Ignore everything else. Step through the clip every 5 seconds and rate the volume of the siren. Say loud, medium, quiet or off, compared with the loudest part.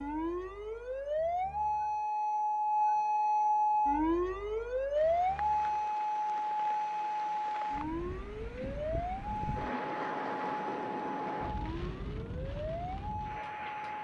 loud, loud, medium.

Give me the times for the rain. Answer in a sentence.
The rain can be heard from 4.9 to 13.9 s.